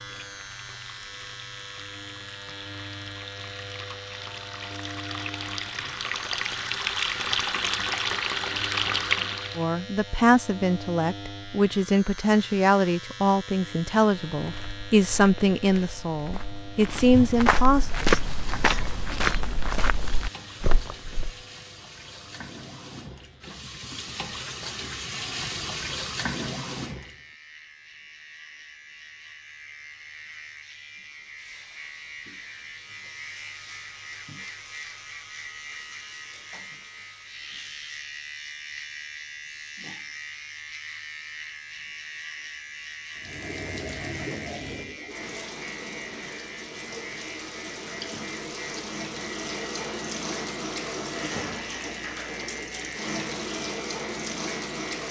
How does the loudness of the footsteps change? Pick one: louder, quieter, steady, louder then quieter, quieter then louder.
louder then quieter.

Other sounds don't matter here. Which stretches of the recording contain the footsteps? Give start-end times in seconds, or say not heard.
14.3-21.3.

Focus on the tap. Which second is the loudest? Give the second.
9 s.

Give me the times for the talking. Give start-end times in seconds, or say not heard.
9.6-17.9.